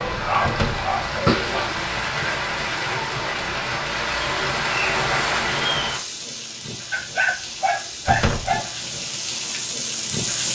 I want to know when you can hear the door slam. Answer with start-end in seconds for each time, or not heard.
0.4-0.9, 8.1-8.6.